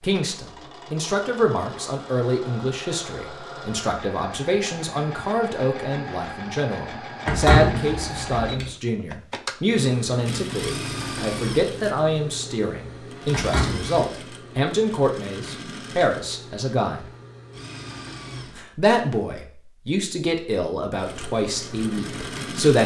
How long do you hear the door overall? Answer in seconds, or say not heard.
2 s.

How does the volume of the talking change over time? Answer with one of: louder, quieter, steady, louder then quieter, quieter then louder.
steady.